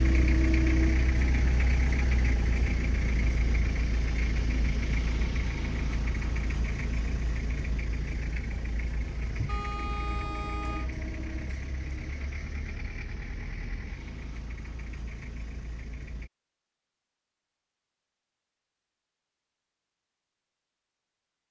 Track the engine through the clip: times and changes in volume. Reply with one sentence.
The engine can be heard from 0.0 to 16.3 s, getting quieter.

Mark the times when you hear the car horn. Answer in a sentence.
The car horn can be heard from 9.4 to 10.9 s.